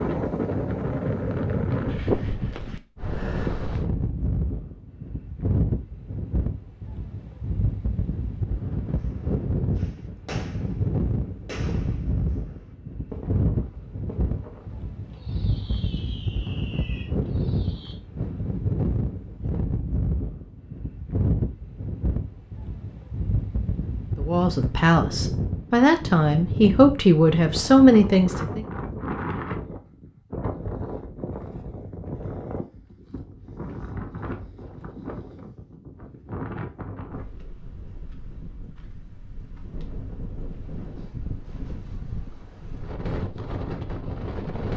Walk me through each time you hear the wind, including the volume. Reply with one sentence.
You can hear the wind from 0.0 to 44.7 s, getting quieter.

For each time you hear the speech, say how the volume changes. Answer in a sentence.
The speech can be heard from 24.1 to 28.6 s, getting louder.